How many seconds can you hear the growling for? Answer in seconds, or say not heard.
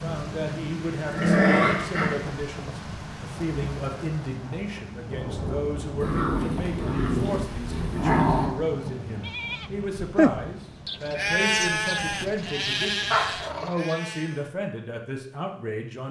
4 s.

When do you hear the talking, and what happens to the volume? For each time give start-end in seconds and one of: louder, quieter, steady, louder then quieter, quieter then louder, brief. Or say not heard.
0.0-16.0 steady.